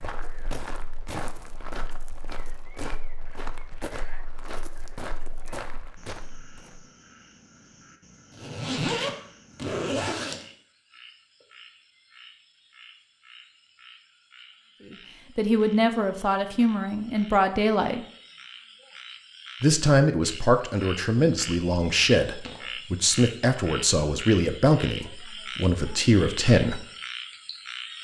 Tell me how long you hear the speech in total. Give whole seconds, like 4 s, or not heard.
10 s.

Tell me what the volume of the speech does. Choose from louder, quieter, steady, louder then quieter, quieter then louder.
steady.